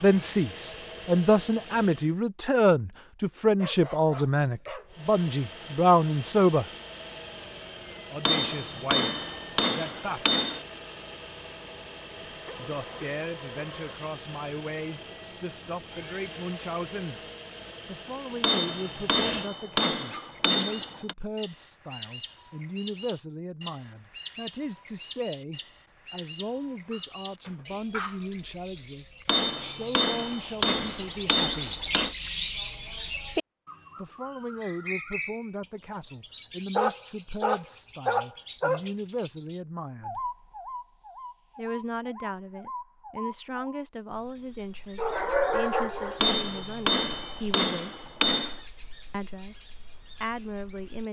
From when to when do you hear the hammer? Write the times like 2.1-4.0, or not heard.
8.2-10.6, 18.4-21.1, 29.2-32.1, 46.2-48.6.